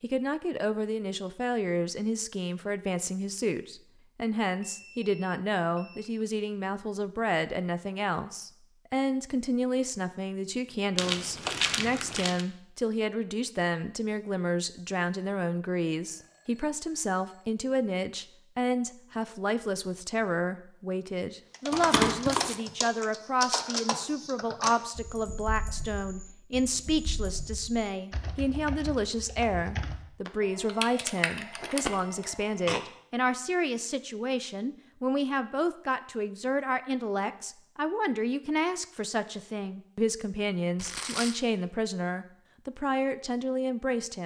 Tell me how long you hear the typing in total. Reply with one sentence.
The typing can be heard for 11 seconds in total.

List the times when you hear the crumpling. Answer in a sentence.
The crumpling can be heard from 10.9 to 12.4 s, from 21.7 to 22.6 s and from 40.8 to 41.4 s.